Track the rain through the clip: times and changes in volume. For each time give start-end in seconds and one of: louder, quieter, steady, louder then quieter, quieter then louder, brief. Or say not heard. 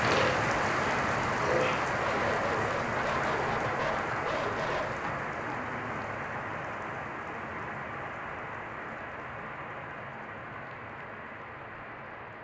0.0-12.4 quieter.